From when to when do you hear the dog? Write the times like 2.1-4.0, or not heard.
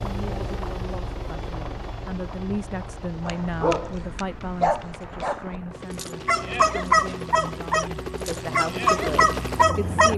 3.2-10.1.